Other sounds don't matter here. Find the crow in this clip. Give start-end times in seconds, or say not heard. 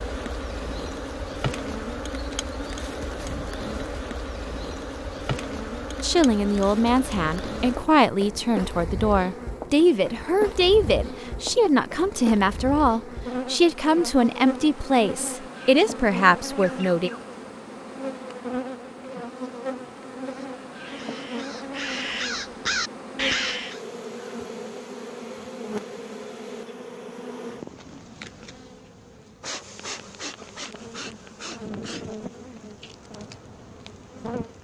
20.2-23.8.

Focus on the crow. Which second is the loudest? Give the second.
23 s.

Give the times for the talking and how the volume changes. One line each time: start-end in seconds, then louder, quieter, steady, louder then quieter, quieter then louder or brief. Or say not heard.
6.0-17.1 steady.